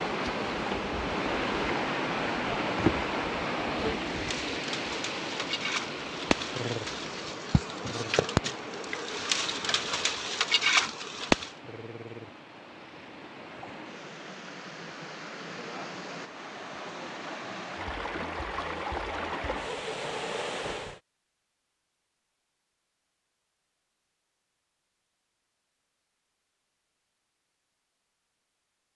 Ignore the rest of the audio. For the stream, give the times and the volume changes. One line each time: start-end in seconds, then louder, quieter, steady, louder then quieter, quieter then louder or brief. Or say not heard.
0.0-21.0 quieter then louder.